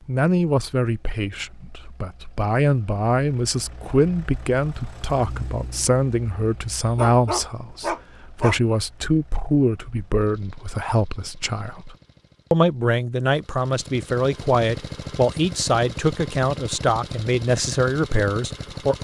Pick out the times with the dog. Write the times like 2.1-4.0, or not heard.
6.8-8.6.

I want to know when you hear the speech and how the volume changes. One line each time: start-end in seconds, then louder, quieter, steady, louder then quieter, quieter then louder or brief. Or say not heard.
0.1-19.0 steady.